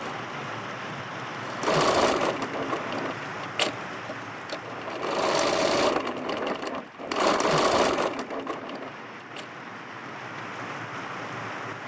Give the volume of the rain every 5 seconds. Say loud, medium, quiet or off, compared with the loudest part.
loud, medium, loud.